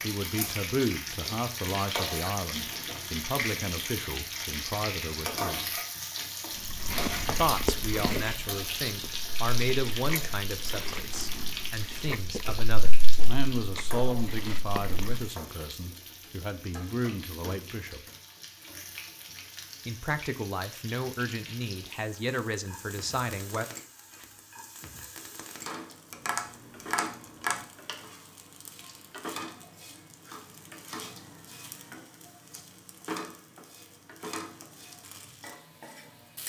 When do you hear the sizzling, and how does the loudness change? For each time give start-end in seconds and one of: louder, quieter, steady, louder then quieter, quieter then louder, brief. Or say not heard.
0.0-36.4 quieter.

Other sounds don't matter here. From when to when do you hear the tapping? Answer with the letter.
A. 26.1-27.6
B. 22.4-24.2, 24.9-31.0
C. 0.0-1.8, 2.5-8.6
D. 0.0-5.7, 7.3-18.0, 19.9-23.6
A.